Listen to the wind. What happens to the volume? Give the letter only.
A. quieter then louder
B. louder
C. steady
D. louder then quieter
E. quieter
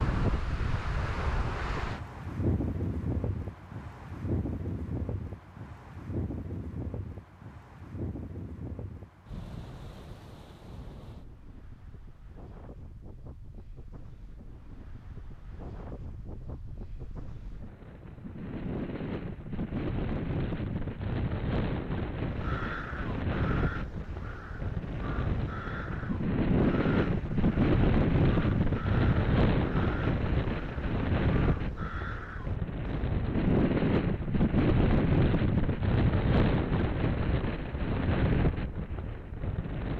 A.